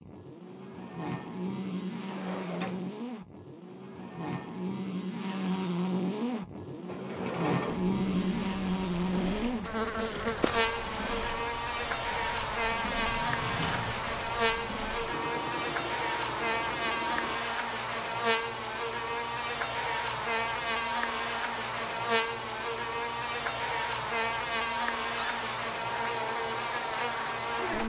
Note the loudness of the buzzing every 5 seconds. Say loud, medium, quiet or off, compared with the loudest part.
medium, loud, loud, loud, loud, loud.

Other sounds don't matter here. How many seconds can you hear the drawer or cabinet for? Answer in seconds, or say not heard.
2 s.